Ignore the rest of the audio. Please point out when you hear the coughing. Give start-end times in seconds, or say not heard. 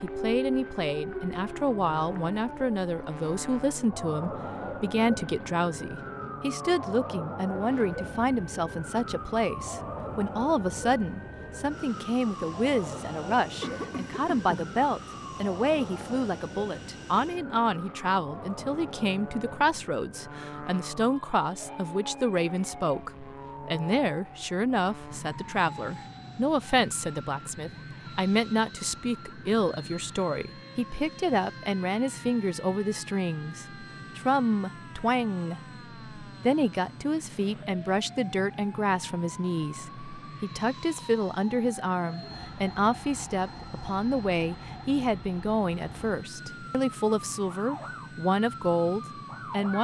13.6-14.8.